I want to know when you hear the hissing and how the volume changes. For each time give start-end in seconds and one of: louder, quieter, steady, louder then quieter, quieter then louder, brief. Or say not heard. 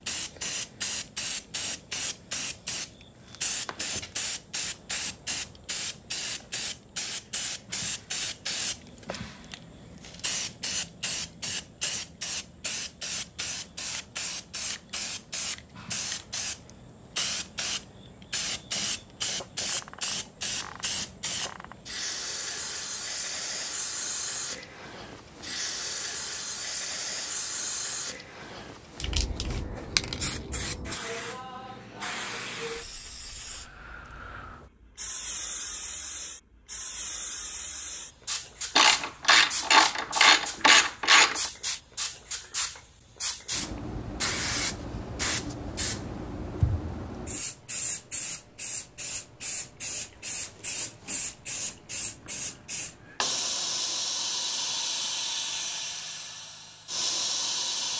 0.0-57.9 steady.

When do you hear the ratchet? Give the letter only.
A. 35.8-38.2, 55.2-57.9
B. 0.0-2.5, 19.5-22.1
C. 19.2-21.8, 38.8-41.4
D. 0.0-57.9
C.